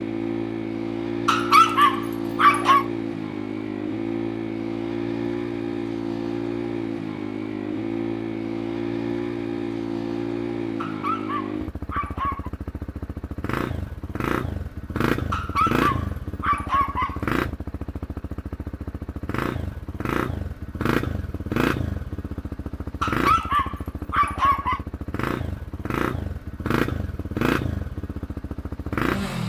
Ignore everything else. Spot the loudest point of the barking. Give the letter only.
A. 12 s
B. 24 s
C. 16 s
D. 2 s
D.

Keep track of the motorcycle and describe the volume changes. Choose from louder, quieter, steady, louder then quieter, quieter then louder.
steady.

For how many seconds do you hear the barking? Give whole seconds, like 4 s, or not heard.
7 s.